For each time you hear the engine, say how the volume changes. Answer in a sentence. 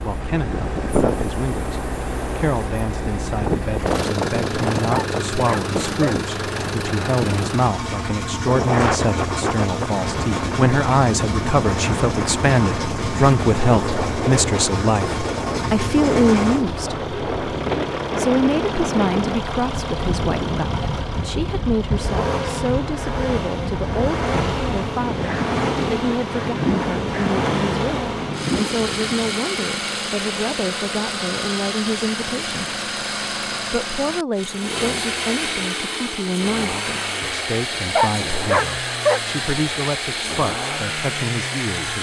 You can hear the engine from 0.0 to 41.9 s, at a steady volume.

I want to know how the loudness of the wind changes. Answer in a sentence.
The volume of the wind stays about the same.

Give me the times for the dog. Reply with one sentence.
You can hear the dog from 4.9 to 6.2 s and from 38.0 to 39.2 s.